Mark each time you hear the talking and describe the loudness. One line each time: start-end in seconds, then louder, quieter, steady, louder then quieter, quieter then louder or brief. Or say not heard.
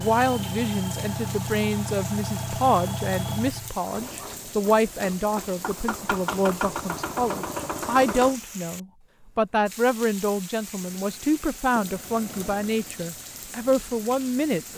0.0-14.7 steady.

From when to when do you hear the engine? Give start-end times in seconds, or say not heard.
0.0-8.3, 10.8-14.7.